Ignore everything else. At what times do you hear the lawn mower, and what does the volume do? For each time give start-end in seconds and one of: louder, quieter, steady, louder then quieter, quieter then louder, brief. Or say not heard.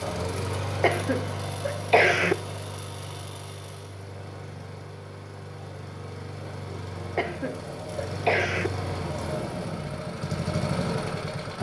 0.0-11.5 quieter then louder.